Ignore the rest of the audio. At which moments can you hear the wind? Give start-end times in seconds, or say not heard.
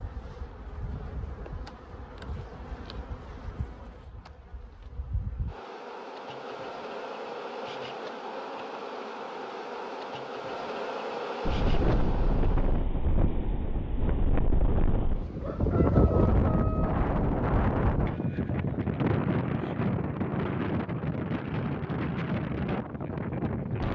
11.4-23.8.